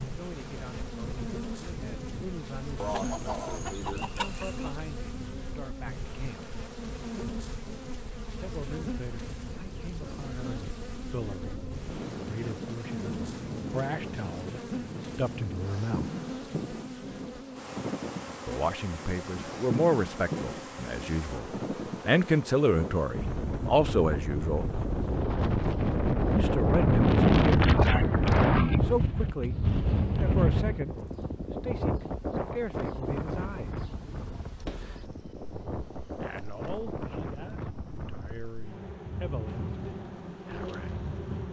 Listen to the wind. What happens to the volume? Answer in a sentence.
The loudness of the wind goes up, then down.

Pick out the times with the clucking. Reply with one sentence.
You can hear the clucking from 2.8 to 4.8 s.